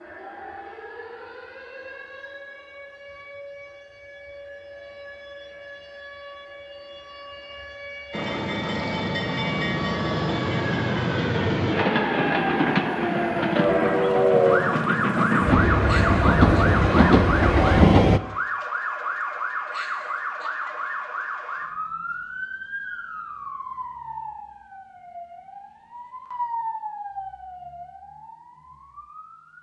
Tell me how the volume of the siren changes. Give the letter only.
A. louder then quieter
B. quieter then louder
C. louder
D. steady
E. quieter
A.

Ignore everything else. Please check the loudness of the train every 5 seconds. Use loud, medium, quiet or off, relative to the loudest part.
off, medium, loud, loud, off, off.